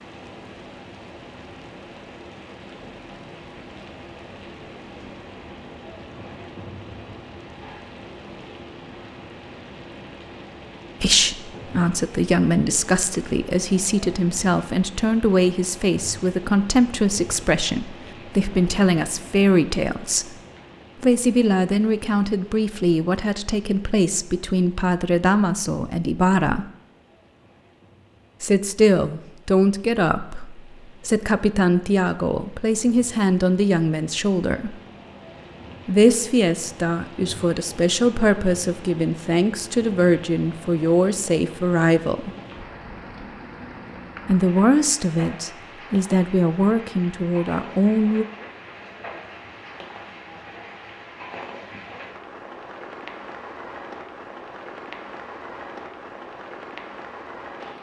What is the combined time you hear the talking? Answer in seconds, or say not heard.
32 s.